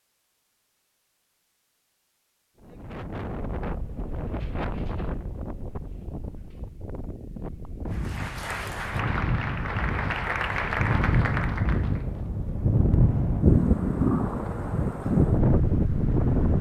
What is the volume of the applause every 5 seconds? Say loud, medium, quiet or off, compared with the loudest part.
off, loud, loud, off.